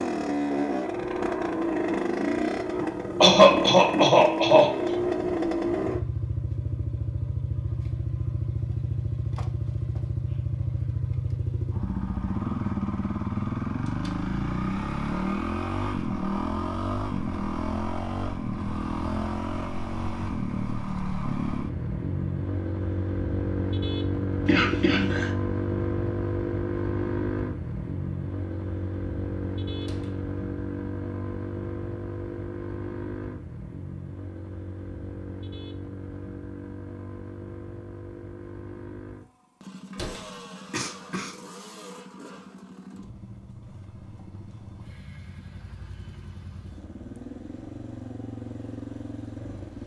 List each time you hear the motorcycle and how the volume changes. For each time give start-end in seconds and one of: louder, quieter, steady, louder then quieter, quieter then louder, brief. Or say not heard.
0.0-49.8 quieter.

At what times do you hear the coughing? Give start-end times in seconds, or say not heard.
3.2-4.8, 24.4-25.3, 40.7-41.4.